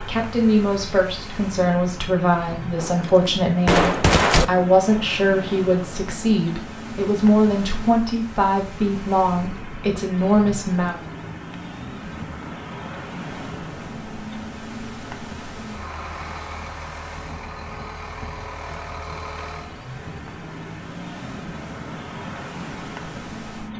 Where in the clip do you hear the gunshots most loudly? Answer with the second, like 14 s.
4 s.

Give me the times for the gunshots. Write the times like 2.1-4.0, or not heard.
2.8-4.5.